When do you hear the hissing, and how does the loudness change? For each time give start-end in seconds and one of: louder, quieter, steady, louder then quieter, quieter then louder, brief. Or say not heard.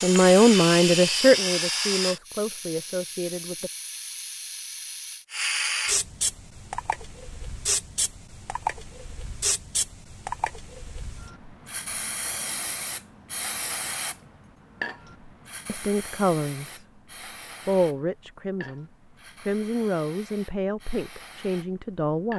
0.0-22.3 quieter.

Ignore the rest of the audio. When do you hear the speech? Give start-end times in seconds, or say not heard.
0.0-3.7, 15.7-16.9, 17.6-22.3.